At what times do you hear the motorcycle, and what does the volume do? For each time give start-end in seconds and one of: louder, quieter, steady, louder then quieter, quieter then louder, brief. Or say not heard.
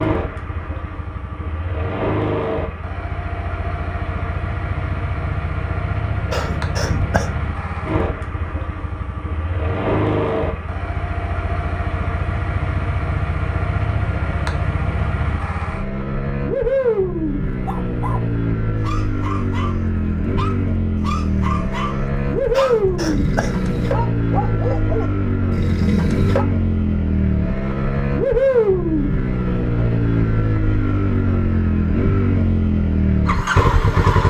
0.0-34.2 louder.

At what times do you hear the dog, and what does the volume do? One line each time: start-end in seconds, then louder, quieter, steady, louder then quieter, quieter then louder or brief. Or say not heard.
17.6-26.4 louder.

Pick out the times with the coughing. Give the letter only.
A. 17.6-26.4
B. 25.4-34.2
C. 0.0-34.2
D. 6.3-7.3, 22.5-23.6
D.